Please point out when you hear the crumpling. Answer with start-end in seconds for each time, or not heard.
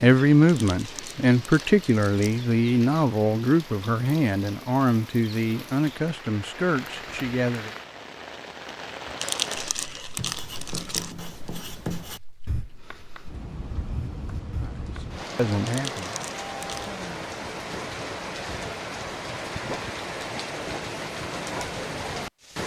0.5-2.4, 9.2-11.2, 15.7-17.0.